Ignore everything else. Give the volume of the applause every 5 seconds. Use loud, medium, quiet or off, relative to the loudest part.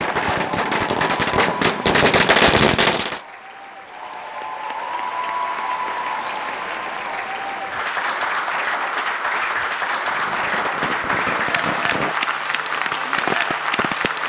medium, loud, loud.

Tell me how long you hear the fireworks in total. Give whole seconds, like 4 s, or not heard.
7 s.